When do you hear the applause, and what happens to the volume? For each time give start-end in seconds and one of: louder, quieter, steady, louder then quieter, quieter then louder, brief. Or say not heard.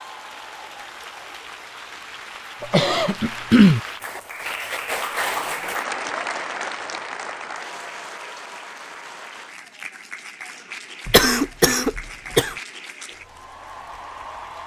0.0-14.6 louder then quieter.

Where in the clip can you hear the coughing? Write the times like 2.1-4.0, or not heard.
2.6-3.8, 11.1-12.6.